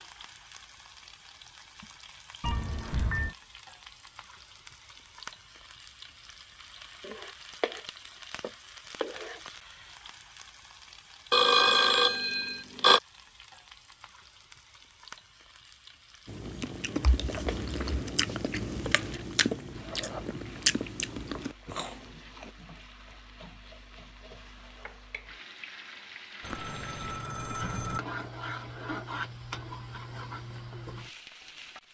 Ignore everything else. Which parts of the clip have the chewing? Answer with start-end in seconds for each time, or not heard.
16.2-22.5.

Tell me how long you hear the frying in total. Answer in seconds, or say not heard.
32 s.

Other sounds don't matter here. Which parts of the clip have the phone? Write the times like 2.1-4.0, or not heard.
2.4-3.4, 11.3-13.0, 26.4-28.0.